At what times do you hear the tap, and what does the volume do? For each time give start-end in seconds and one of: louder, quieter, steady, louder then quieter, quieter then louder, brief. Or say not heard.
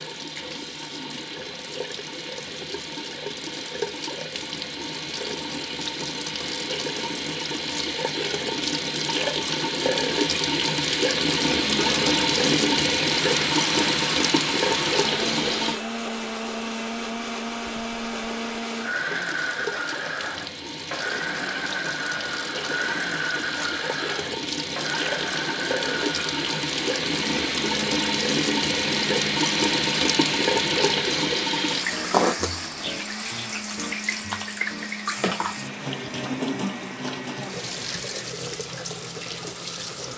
0.0-15.8 louder
18.9-40.1 louder then quieter.